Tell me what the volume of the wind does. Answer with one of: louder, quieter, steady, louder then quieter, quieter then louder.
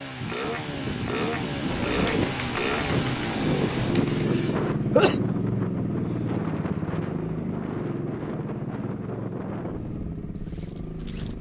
quieter.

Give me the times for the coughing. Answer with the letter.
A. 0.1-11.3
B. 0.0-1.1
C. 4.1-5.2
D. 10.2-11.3
C.